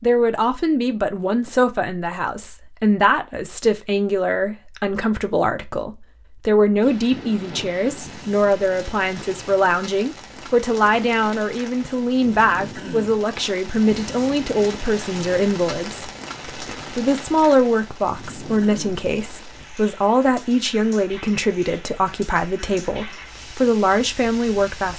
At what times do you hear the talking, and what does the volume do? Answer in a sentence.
The talking can be heard from 0.0 to 24.9 s, at a steady volume.